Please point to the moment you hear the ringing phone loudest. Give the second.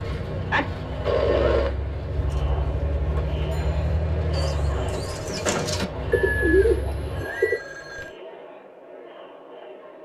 1 s.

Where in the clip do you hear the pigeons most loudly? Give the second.
7 s.